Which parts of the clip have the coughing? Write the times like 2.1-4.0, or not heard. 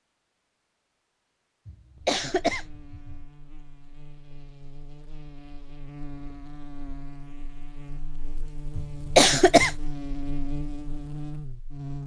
1.6-3.2, 8.8-9.8.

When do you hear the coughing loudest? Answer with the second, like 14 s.
9 s.